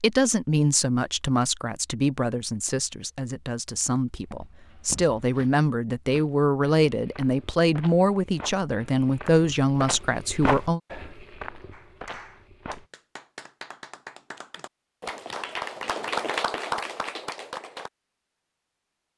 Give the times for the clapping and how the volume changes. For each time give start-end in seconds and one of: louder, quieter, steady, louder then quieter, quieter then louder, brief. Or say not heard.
11.7-17.9 louder.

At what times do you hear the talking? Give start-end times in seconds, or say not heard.
0.0-10.8.